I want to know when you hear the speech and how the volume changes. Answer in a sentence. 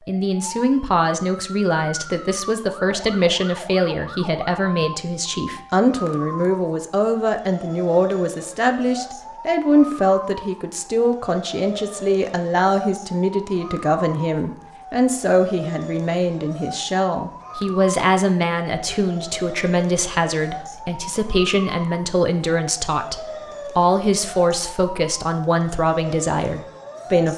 The speech can be heard from 0.1 to 27.3 s, at a steady volume.